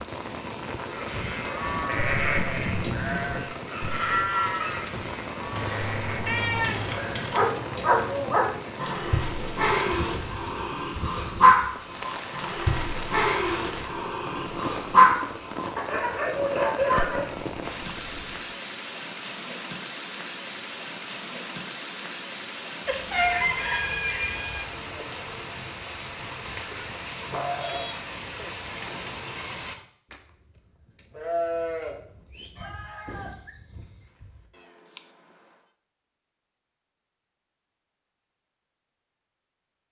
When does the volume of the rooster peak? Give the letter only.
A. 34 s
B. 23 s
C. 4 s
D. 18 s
B.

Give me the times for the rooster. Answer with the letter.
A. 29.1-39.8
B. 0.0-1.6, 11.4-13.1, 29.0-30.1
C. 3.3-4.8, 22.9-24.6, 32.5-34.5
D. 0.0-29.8
C.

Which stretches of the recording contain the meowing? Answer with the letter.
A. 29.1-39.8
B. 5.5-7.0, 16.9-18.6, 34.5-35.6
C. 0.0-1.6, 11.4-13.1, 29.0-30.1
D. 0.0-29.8
B.